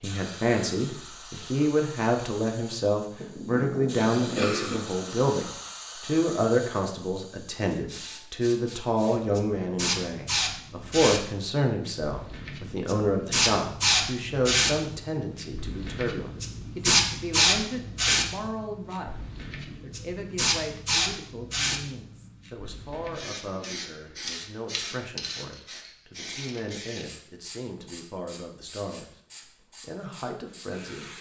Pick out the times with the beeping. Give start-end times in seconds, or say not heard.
not heard.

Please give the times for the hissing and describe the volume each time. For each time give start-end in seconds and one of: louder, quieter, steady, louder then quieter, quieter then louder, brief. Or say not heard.
0.0-31.1 louder then quieter.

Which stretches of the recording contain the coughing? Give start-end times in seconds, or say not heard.
3.1-4.8.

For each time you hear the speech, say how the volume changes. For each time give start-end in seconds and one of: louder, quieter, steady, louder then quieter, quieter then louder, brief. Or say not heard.
0.0-19.1 quieter
19.8-29.1 steady
29.8-31.1 brief.